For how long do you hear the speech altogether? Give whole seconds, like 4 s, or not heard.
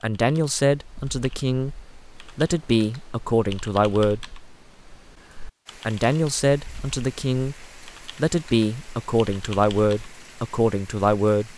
9 s.